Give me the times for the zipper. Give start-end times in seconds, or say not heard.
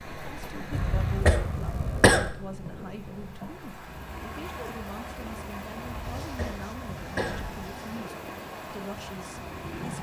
not heard.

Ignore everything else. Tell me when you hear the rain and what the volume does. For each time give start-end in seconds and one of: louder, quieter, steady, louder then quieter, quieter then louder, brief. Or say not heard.
0.0-9.9 quieter then louder.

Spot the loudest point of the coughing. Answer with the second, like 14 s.
2 s.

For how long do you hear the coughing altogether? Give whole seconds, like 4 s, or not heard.
3 s.